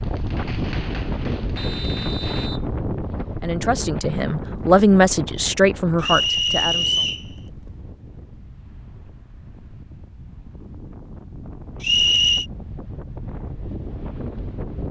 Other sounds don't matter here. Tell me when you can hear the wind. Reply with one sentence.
The wind can be heard from 0.0 to 14.8 s.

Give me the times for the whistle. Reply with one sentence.
You can hear the whistle from 1.6 to 2.6 s, from 6.0 to 7.2 s and from 11.8 to 12.4 s.